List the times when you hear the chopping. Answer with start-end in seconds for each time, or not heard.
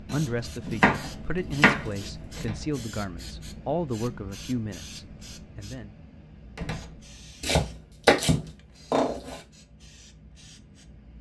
0.1-2.1, 7.4-9.4.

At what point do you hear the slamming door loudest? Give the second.
7 s.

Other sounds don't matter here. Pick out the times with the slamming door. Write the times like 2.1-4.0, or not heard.
2.4-2.8, 6.5-7.1.